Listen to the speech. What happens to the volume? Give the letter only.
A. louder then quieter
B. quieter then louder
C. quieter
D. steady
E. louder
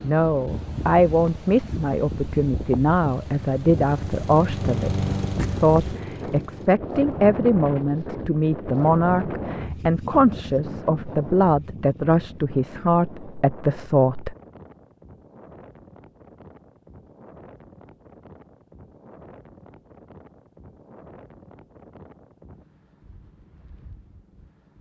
D.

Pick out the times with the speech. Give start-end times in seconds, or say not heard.
0.0-14.3.